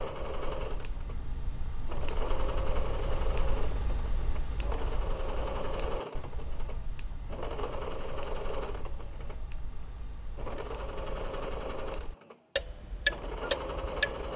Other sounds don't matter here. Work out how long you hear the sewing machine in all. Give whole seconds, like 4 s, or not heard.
14 s.